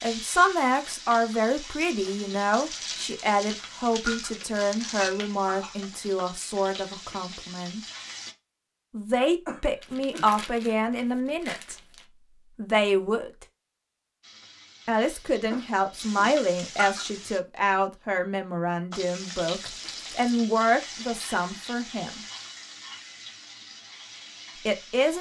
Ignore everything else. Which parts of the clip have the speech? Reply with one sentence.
You can hear the speech from 0.0 to 7.8 s, from 8.9 to 11.8 s, from 12.6 to 13.4 s, from 14.8 to 22.2 s and from 24.6 to 25.1 s.